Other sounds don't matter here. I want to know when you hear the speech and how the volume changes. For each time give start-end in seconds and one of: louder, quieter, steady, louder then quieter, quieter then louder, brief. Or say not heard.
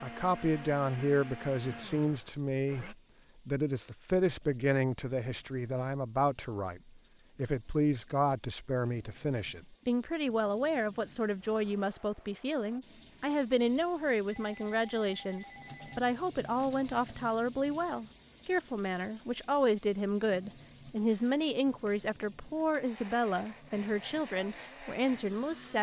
0.0-25.7 steady.